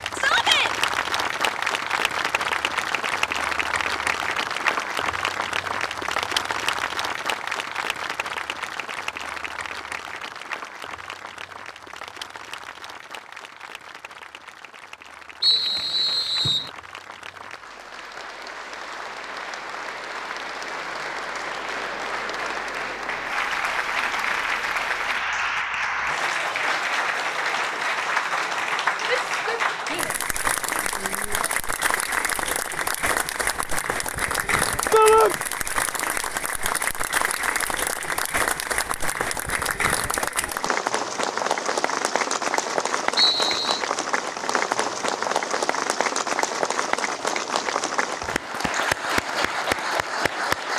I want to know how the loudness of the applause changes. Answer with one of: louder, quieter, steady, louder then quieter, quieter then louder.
quieter then louder.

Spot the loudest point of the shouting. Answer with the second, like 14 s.
35 s.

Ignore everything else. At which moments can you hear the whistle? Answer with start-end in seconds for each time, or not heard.
15.4-16.7, 43.1-43.8.